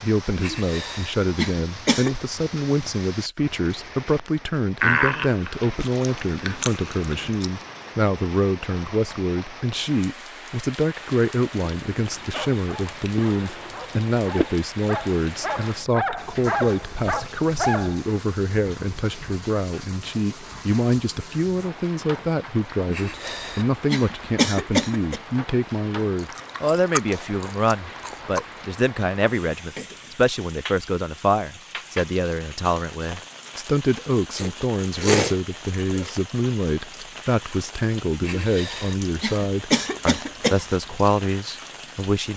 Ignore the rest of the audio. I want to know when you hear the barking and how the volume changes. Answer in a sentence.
You can hear the barking from 12.2 to 18.1 s, getting louder.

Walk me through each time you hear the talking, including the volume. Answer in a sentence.
The talking can be heard from 0.0 to 42.3 s, at a steady volume.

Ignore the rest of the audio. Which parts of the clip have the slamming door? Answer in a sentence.
The slamming door can't be heard in this clip.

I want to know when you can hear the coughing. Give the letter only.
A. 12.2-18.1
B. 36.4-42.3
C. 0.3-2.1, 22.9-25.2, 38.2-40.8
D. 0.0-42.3
C.